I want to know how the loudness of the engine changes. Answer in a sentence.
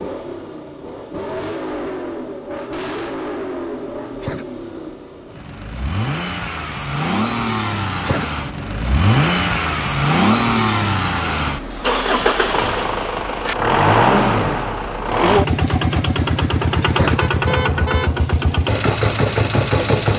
The loudness of the engine goes up.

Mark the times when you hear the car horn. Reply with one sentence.
The car horn can be heard from 17.1 to 18.1 s.